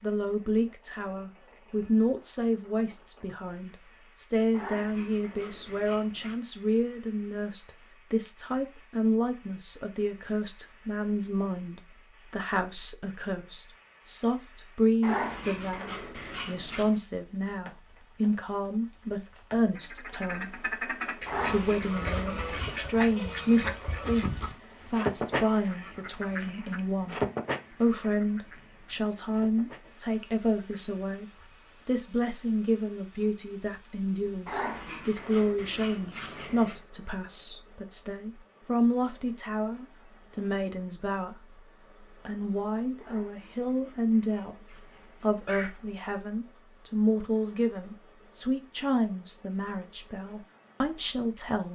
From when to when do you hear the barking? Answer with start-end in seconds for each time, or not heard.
4.5-6.4, 15.0-16.9, 21.2-22.9, 34.5-36.9, 43.0-45.8.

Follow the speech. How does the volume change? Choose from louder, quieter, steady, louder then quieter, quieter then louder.
steady.